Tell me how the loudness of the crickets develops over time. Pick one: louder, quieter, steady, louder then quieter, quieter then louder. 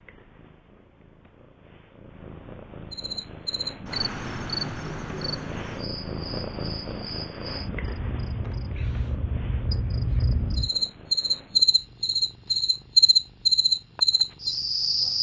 quieter then louder.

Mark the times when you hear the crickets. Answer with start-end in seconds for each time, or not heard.
2.9-15.1.